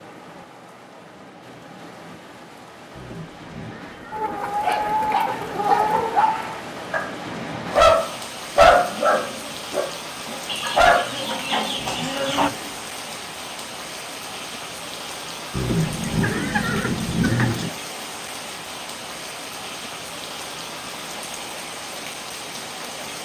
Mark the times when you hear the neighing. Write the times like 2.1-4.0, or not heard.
2.9-4.5, 11.8-12.8, 15.5-17.6.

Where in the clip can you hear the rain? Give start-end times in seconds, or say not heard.
0.0-23.2.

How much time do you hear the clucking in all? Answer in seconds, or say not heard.
6 s.